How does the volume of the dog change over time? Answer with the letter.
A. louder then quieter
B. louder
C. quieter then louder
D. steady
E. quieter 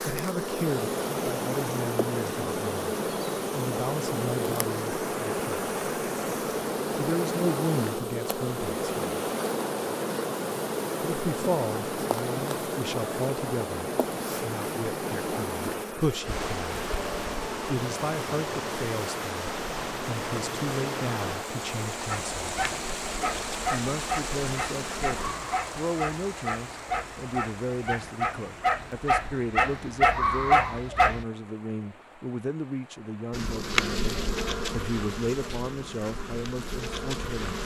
B.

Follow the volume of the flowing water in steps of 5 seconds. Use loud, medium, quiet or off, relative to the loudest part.
loud, loud, loud, loud, loud, medium, quiet, off.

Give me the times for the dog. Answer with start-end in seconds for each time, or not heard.
22.1-31.2.